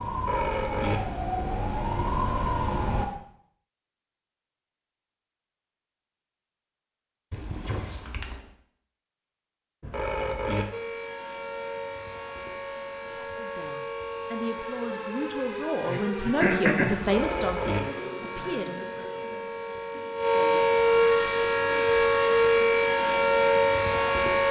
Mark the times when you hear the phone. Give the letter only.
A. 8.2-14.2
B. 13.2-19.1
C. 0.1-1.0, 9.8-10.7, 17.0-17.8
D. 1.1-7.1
C.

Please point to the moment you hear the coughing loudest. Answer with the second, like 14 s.
17 s.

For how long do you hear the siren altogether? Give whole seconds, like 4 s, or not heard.
17 s.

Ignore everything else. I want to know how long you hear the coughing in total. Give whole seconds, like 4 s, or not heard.
2 s.